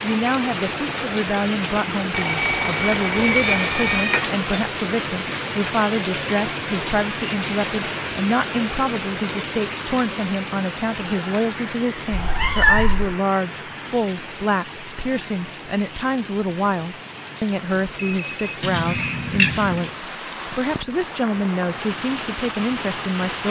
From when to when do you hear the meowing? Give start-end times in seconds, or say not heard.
3.2-4.4, 12.1-13.2, 18.6-19.9.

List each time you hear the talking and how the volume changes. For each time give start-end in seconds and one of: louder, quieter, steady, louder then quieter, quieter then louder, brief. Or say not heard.
0.0-23.4 steady.